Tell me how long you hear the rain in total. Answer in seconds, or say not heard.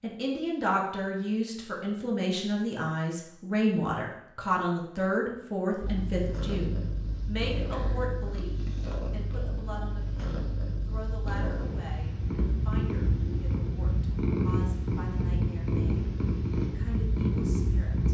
not heard.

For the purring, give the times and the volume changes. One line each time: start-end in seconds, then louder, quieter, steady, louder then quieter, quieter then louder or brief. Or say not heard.
5.8-18.0 louder.